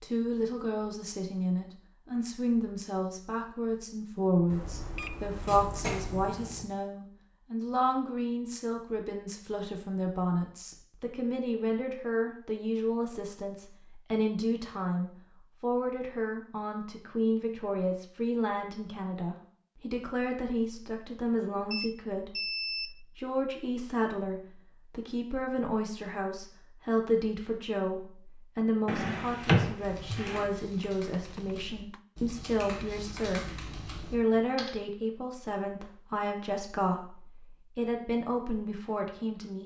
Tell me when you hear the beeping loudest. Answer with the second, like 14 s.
23 s.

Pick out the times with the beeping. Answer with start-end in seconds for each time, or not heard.
4.5-6.4, 21.7-23.0, 31.1-32.0.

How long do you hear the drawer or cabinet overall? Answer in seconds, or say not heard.
3 s.